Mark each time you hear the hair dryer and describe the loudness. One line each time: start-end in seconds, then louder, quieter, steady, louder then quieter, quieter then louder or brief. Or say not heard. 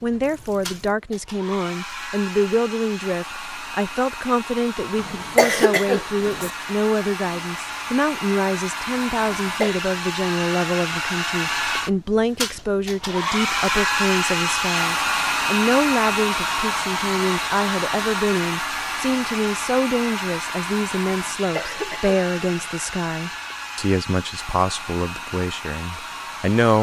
0.0-26.7 louder then quieter.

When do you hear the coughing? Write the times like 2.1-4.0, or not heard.
5.0-6.5, 9.2-9.8, 21.1-22.7.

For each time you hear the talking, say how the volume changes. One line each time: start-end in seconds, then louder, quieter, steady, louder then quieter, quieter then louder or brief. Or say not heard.
0.0-26.7 steady.